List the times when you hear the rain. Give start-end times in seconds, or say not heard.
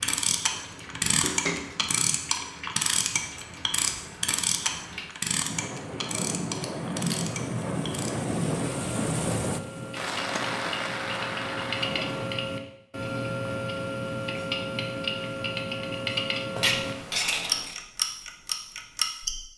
0.0-12.4.